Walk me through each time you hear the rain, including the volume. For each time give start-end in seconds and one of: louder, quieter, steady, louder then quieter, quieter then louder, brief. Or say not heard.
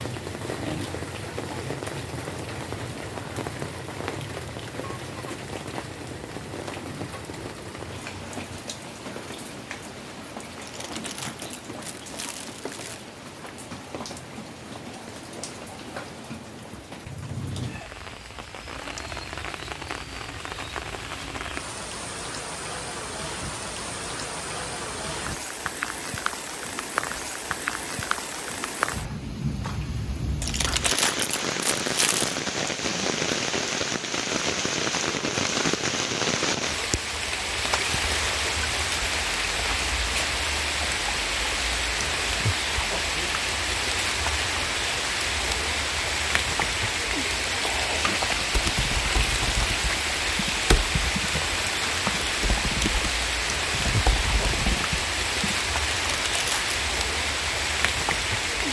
0.0-58.6 louder.